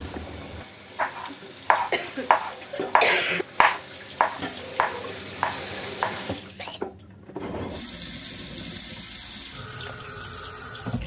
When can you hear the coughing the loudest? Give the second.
3 s.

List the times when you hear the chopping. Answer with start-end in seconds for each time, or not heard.
0.9-6.8.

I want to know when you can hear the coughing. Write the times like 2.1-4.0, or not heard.
1.4-3.5, 6.0-6.8.